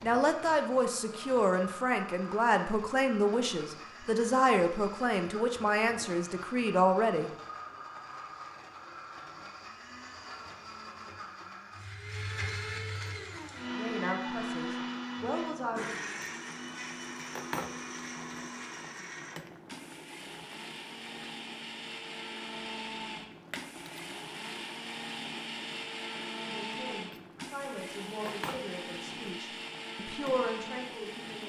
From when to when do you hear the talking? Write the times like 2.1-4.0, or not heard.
0.0-7.3, 13.8-15.9, 26.4-31.4.